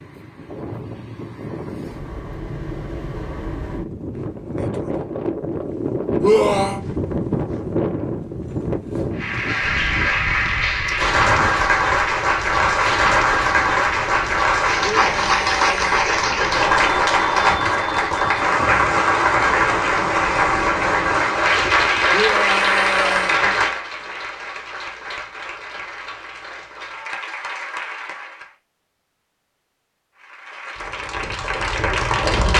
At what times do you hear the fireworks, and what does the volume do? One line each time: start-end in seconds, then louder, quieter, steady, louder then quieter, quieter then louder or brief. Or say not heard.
not heard.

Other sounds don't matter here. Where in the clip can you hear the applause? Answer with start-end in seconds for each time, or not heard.
9.2-28.6, 30.1-32.5.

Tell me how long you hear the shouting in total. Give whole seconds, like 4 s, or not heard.
3 s.